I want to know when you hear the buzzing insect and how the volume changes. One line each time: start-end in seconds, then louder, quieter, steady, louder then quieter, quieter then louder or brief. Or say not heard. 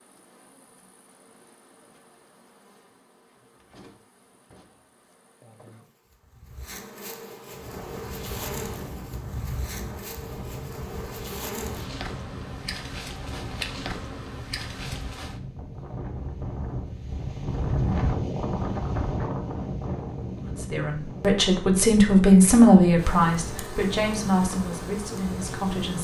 0.0-15.4 louder
22.9-25.9 brief.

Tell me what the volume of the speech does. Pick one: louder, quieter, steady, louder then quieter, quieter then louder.
louder then quieter.